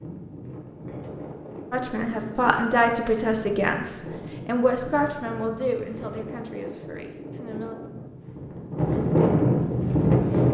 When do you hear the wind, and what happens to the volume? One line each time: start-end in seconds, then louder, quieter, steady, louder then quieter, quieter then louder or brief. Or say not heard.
0.0-10.4 louder.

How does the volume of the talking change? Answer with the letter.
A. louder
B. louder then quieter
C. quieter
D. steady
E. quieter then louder
C.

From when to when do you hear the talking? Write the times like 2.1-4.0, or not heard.
1.7-7.8.